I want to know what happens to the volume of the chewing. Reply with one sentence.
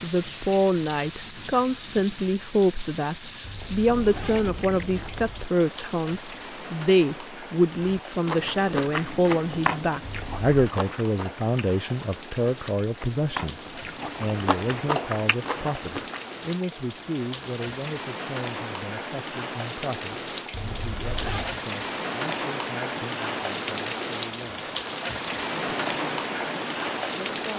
The volume of the chewing goes down, then up.